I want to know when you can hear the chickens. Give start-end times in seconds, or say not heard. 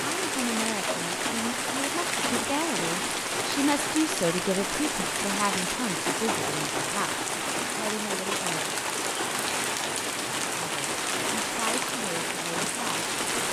not heard.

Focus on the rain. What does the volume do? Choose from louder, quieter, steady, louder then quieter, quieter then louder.
steady.